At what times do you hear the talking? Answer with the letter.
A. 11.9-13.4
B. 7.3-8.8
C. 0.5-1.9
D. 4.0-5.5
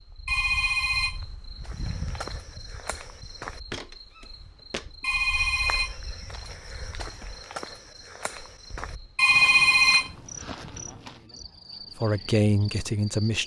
A.